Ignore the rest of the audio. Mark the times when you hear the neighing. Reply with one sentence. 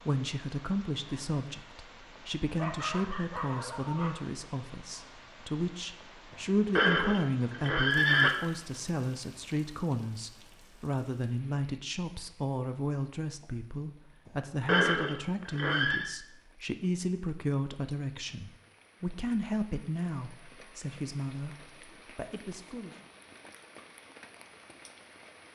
You can hear the neighing from 6.8 to 8.3 s and from 14.7 to 16.1 s.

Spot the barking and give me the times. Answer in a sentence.
The barking can be heard from 2.5 to 4.1 s.